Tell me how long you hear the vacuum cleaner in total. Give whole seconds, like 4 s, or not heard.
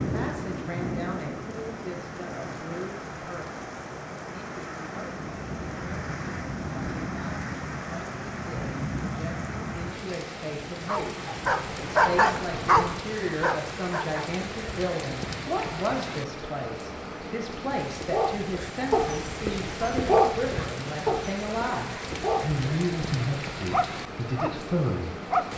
not heard.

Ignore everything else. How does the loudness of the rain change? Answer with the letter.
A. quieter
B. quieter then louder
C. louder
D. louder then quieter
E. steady
E.